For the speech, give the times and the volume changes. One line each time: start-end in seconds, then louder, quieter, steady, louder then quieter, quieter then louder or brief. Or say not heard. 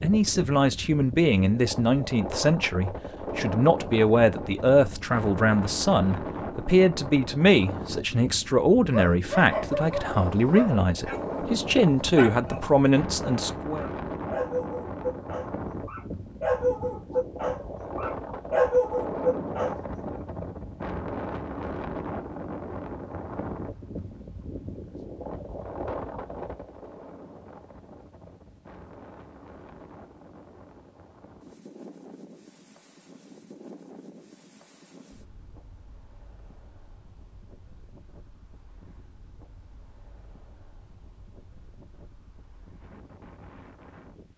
0.0-13.8 steady.